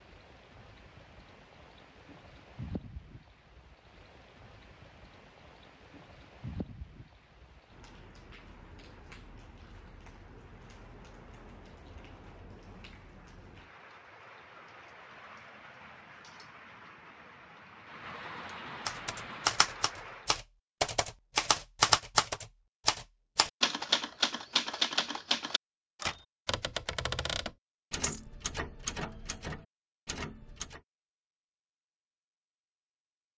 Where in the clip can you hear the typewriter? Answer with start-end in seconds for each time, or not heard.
18.9-30.8.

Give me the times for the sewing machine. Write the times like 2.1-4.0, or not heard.
not heard.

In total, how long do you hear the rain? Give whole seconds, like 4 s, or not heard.
20 s.